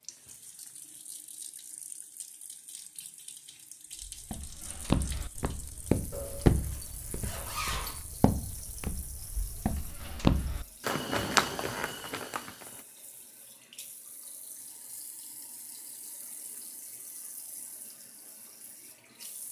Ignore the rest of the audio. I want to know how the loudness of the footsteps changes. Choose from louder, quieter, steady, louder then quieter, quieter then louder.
quieter then louder.